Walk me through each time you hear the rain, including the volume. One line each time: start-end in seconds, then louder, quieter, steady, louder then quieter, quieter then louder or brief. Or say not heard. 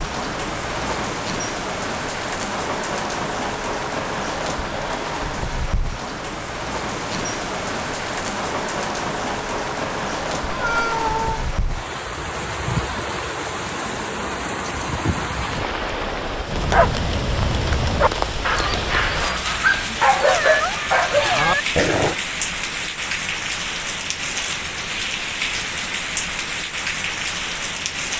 0.0-28.1 steady.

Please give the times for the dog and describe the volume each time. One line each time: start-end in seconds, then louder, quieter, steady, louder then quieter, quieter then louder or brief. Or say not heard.
16.4-22.1 louder.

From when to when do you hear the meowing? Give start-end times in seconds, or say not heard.
10.4-11.4, 20.1-21.6.